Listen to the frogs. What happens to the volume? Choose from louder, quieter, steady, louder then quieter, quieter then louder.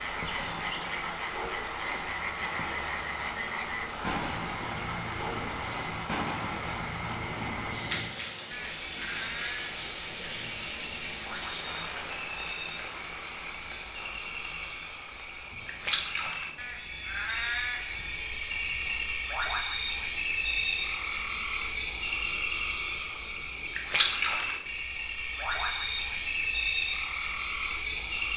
louder.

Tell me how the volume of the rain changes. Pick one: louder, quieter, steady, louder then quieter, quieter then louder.
quieter.